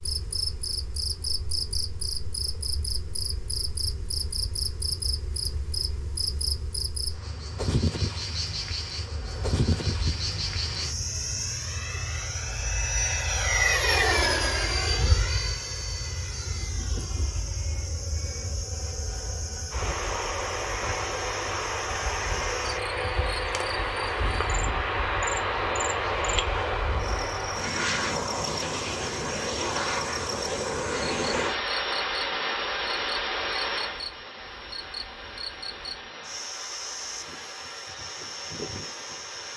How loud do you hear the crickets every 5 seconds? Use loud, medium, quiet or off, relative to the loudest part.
loud, loud, loud, medium, medium, medium, medium, medium.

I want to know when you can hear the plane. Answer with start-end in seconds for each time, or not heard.
8.9-39.5.